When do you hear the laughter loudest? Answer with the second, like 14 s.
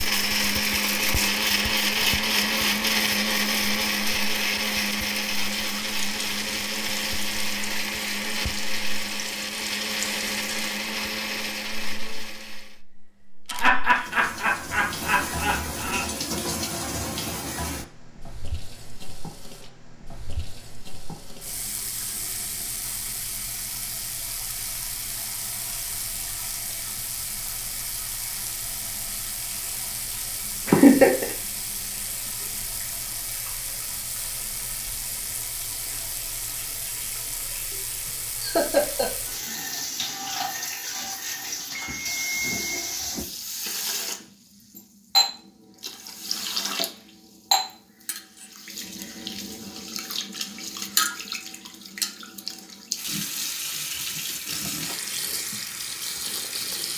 31 s.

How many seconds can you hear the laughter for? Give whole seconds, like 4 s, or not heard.
4 s.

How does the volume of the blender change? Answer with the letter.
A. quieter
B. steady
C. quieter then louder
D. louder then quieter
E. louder
A.